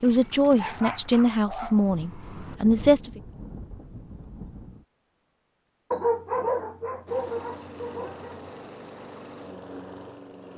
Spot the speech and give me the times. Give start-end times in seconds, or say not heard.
0.0-3.2.